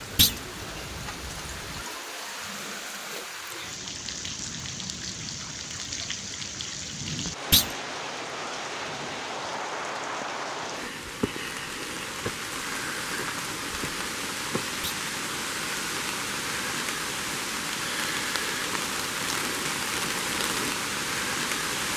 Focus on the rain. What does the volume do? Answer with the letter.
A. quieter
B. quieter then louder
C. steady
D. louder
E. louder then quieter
D.